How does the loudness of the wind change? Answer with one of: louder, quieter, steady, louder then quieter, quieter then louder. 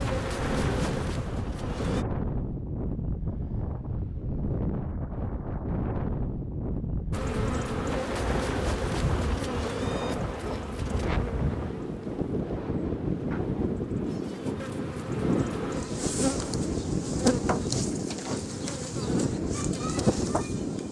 steady.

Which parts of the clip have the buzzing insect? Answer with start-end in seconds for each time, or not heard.
0.0-2.0, 7.1-20.8.